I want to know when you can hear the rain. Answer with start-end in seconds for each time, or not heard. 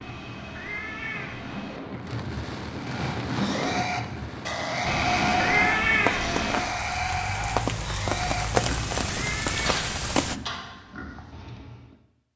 0.0-10.3.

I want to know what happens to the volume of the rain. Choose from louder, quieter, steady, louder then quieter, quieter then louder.
louder.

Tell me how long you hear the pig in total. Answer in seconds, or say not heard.
9 s.